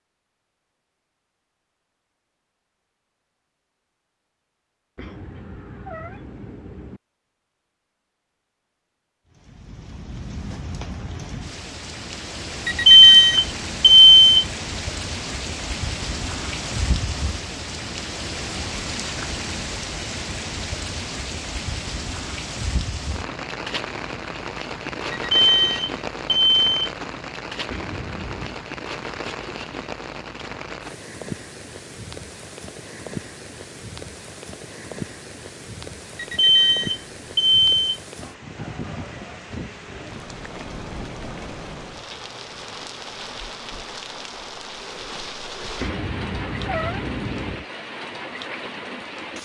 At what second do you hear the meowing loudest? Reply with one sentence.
The loudest moment of the meowing is at 47 seconds.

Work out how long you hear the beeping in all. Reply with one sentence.
You can hear the beeping for 5 seconds altogether.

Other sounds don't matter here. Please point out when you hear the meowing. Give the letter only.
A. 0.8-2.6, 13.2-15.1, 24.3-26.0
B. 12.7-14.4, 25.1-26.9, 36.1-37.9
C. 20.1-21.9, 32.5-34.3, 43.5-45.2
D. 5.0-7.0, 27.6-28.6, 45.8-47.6
D.